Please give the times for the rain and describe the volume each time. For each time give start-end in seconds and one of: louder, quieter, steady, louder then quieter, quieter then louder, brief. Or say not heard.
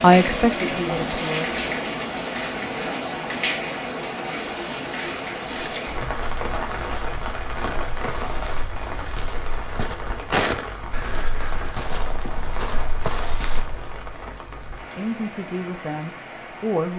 0.0-16.9 quieter.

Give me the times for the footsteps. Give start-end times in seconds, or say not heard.
5.4-13.9.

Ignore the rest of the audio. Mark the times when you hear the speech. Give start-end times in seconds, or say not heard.
0.0-1.6, 14.9-16.9.